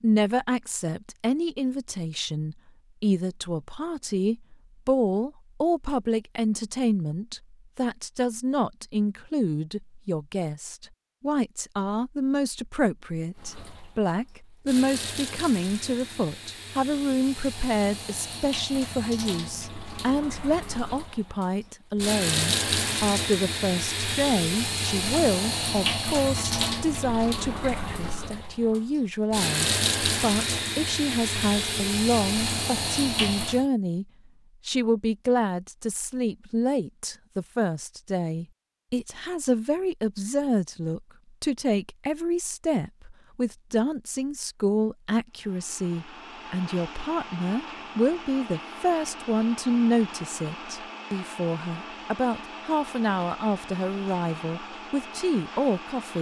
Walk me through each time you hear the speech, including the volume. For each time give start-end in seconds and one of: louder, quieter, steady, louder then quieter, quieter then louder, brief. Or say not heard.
0.0-34.0 steady
34.6-56.1 steady.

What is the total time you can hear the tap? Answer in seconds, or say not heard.
20 s.